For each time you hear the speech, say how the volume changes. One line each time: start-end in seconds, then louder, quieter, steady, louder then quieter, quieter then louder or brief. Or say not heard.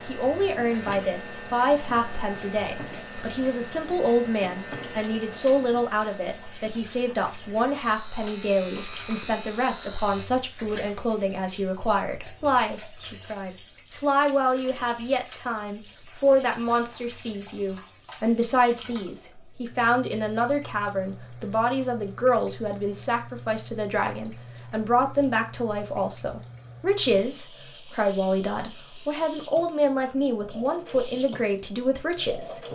0.1-32.6 steady.